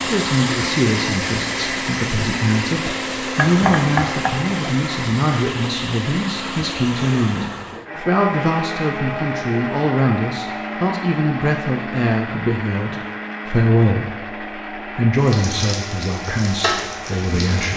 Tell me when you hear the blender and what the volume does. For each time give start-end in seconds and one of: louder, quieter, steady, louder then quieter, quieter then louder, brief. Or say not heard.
0.0-17.7 quieter.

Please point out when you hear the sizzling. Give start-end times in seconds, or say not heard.
15.2-17.7.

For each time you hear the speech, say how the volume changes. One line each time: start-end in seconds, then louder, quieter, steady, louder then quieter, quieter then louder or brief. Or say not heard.
0.1-17.7 steady.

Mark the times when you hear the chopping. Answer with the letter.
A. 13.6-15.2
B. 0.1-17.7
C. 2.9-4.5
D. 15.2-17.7
C.